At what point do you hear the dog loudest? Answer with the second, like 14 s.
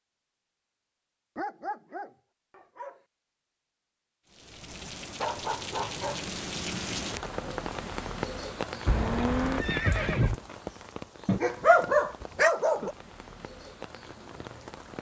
12 s.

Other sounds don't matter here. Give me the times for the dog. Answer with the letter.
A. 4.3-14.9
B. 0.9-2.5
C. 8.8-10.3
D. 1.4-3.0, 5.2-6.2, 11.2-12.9
D.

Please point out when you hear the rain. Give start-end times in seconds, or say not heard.
4.3-14.9.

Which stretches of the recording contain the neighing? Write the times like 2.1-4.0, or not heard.
8.8-10.3.